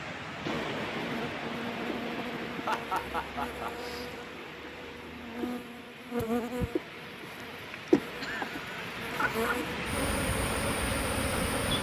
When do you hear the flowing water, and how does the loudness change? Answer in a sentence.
You can hear the flowing water from 0.0 to 11.7 s, getting quieter then louder.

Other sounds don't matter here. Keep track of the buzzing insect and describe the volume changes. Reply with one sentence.
The loudness of the buzzing insect goes up.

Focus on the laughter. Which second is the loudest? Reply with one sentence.
The loudest moment of the laughter is at 3 seconds.